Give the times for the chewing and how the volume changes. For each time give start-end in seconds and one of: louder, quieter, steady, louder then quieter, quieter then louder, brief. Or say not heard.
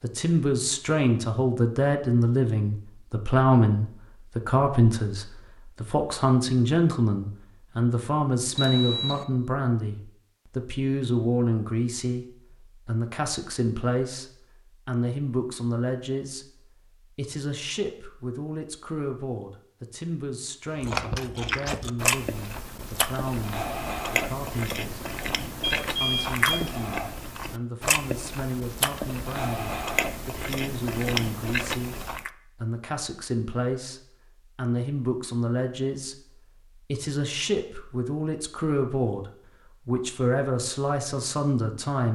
20.8-32.3 steady.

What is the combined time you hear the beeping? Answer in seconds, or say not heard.
2 s.